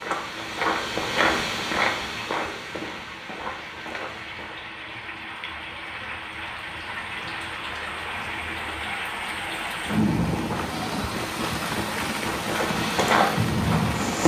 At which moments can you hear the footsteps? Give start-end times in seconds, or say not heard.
0.0-4.6, 12.4-14.2.